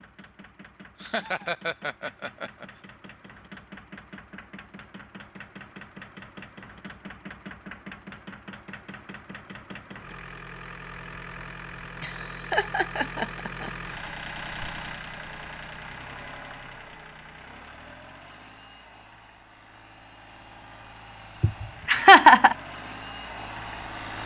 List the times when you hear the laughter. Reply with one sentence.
You can hear the laughter from 1.0 to 2.6 s, from 12.0 to 13.7 s and from 21.4 to 22.6 s.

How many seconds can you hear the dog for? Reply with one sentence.
You can't hear the dog here.